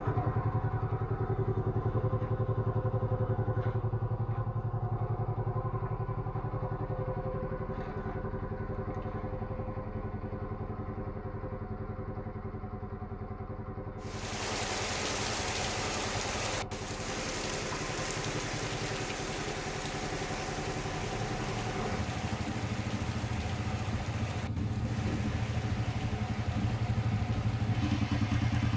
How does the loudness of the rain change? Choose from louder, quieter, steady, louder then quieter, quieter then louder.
quieter.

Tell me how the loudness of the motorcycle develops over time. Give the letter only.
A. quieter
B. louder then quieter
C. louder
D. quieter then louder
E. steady
D.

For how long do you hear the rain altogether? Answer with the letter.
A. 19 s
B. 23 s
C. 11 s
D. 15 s
D.